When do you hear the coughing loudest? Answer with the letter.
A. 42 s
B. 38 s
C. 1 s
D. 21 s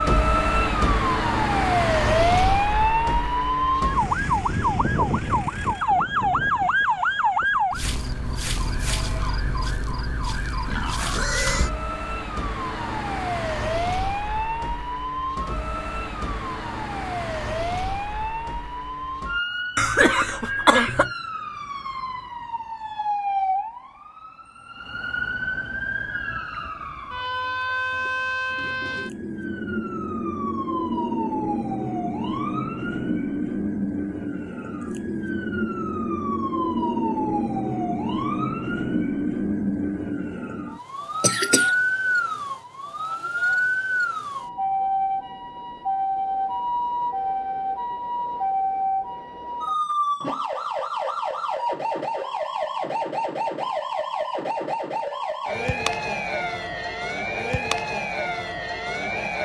D.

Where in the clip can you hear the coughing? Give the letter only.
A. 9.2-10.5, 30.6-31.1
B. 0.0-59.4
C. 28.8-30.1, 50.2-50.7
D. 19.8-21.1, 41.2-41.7
D.